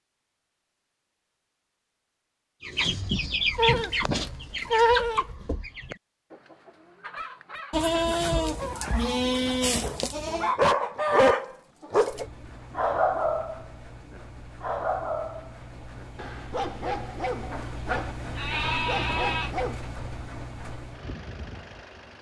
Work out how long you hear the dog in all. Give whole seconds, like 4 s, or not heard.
10 s.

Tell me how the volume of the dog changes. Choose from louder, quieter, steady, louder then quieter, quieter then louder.
quieter.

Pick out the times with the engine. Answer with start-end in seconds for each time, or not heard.
12.1-22.1.